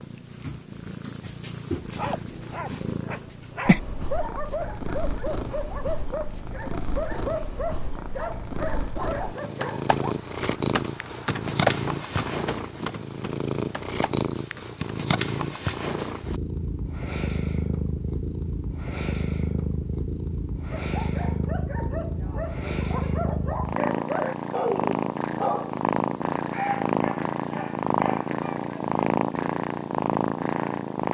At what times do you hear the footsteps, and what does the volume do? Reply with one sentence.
The footsteps can't be heard in this clip.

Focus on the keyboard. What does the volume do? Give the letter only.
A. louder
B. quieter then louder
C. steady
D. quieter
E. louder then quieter
E.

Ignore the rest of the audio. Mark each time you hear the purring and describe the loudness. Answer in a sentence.
You can hear the purring from 0.0 to 31.1 s, getting louder.